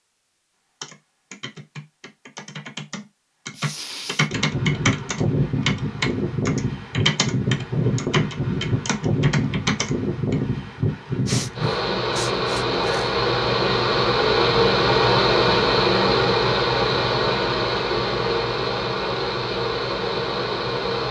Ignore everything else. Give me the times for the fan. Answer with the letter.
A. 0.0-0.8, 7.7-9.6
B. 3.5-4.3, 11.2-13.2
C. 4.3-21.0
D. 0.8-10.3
C.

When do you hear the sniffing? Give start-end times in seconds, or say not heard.
3.5-4.3, 11.2-13.2.